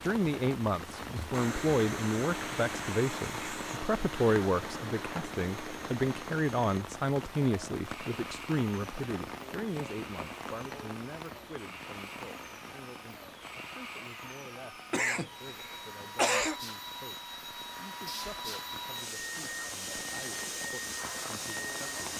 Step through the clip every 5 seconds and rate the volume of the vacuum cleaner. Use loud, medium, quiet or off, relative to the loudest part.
loud, medium, medium, loud, loud.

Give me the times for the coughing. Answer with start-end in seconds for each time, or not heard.
14.9-16.6.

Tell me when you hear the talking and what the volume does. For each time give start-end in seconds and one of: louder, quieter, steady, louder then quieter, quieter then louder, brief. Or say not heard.
0.0-21.9 quieter.